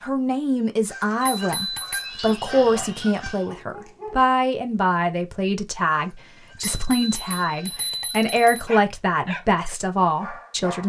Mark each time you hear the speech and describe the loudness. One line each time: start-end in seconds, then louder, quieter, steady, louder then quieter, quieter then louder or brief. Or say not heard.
0.0-10.8 steady.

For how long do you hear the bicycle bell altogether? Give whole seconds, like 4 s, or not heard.
3 s.